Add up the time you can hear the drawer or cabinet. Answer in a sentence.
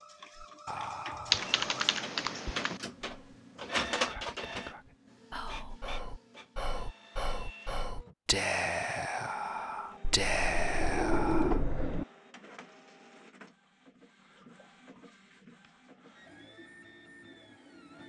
You can hear the drawer or cabinet for 2 seconds altogether.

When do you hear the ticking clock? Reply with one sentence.
The ticking clock can't be heard in this clip.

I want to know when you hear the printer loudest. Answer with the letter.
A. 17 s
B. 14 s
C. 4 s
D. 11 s
C.